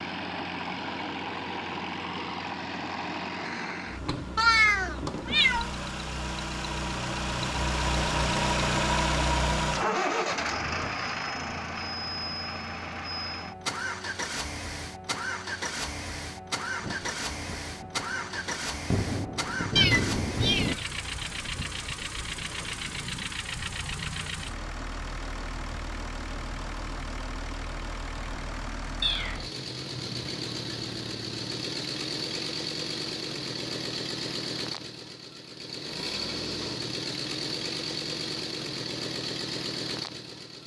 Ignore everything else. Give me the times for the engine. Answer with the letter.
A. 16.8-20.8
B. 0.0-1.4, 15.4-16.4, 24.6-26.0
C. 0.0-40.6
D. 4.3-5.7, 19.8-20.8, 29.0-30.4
C.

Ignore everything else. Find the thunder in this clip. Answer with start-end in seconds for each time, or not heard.
16.8-20.8.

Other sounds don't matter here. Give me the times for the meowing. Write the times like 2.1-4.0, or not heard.
4.3-5.7, 19.8-20.8, 29.0-30.4.